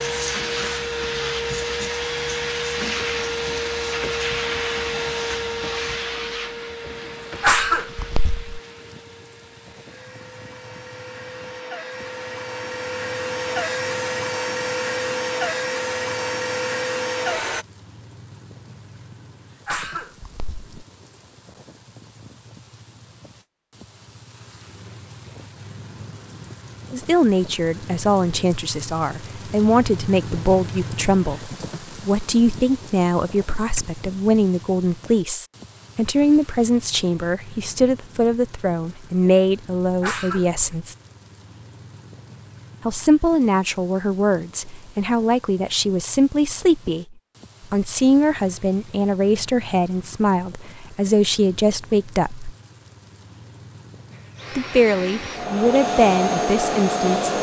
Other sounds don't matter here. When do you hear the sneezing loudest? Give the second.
8 s.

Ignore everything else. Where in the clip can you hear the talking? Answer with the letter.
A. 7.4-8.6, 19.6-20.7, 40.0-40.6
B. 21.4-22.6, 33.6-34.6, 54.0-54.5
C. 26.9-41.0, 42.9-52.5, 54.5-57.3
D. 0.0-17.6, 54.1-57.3
C.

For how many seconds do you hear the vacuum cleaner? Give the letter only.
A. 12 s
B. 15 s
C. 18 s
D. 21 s
D.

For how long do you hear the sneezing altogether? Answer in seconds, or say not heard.
3 s.